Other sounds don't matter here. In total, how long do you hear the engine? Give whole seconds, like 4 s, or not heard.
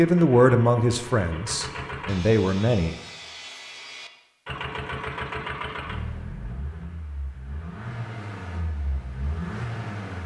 8 s.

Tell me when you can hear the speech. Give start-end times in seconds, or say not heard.
0.0-3.0.